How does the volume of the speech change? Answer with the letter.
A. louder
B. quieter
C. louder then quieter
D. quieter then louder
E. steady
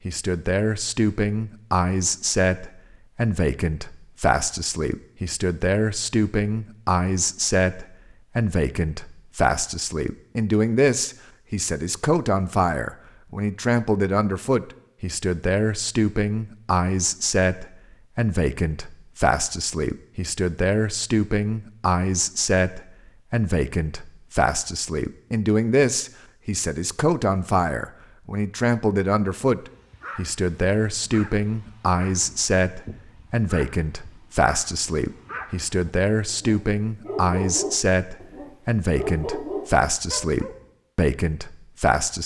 E.